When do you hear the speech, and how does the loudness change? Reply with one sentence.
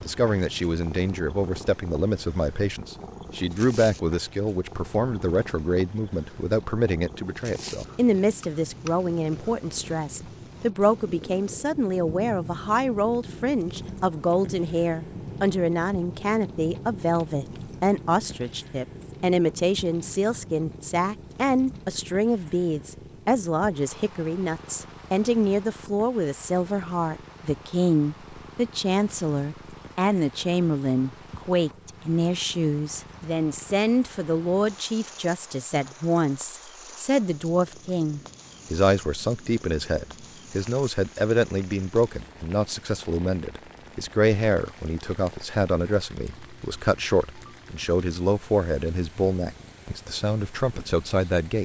You can hear the speech from 0.0 to 51.5 s, at a steady volume.